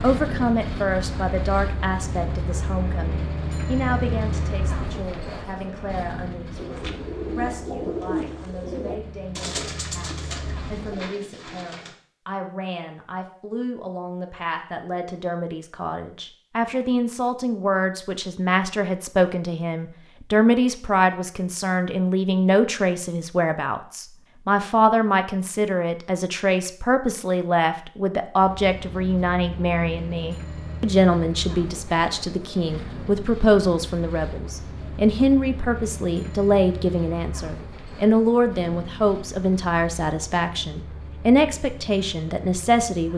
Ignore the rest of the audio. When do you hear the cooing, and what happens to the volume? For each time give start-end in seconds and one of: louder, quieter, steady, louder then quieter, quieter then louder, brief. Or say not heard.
6.5-11.9 quieter.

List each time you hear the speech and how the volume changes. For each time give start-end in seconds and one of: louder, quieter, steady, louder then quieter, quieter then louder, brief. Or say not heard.
0.0-43.1 louder.